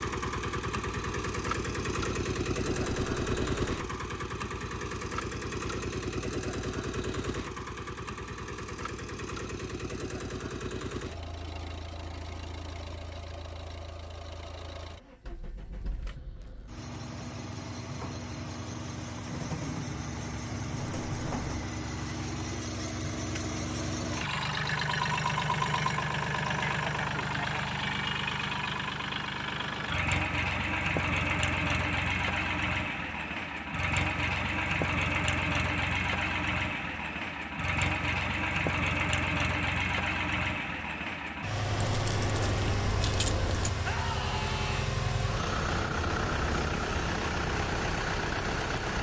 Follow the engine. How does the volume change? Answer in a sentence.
The volume of the engine goes down, then up.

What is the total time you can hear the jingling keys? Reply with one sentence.
The jingling keys can be heard for 4 seconds in total.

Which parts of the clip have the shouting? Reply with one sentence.
You can hear the shouting from 43.8 to 45.0 s.